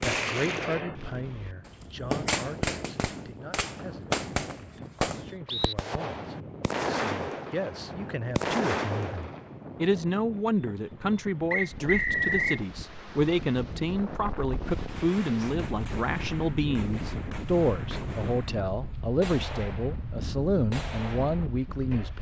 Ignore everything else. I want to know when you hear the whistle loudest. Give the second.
12 s.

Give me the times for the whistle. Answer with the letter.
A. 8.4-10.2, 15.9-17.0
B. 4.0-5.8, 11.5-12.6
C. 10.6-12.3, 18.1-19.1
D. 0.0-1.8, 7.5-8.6
B.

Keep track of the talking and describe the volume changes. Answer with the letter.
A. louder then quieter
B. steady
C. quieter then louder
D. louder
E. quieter
D.